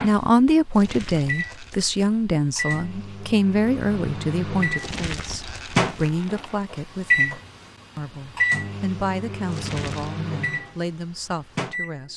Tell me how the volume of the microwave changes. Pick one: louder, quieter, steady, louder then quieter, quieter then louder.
louder then quieter.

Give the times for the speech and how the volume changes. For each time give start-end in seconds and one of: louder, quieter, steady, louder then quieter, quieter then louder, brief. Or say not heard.
0.0-12.1 quieter.